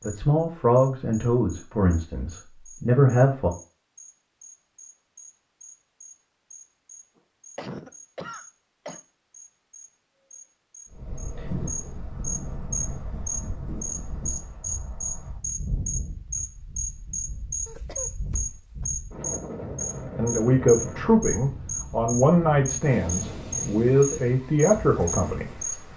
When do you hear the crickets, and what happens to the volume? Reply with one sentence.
You can hear the crickets from 0.0 to 25.8 s, getting louder.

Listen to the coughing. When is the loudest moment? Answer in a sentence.
The volume of the coughing peaks at 8 seconds.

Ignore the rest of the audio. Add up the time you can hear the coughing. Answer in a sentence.
You can hear the coughing for 3 seconds altogether.